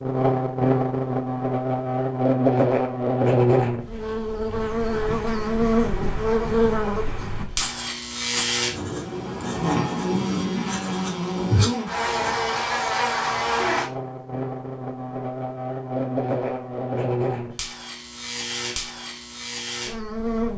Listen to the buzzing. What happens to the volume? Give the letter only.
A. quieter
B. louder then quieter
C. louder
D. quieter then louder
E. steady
A.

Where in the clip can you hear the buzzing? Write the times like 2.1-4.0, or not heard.
0.0-20.5.